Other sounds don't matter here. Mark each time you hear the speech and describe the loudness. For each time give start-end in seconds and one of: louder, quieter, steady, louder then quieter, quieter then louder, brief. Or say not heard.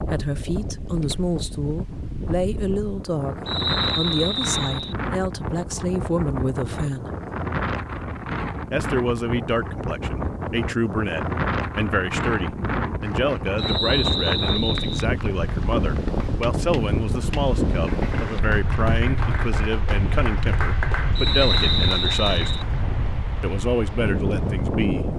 0.0-7.2 steady
8.7-22.6 steady
23.4-25.1 brief.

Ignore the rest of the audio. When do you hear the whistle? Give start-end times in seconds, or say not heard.
3.5-5.0, 13.6-15.1, 21.1-22.6.